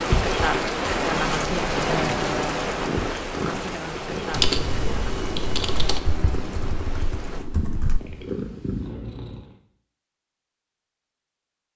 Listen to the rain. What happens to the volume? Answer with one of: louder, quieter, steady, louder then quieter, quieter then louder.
quieter.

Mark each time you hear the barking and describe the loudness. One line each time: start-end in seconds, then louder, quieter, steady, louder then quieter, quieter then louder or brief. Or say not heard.
not heard.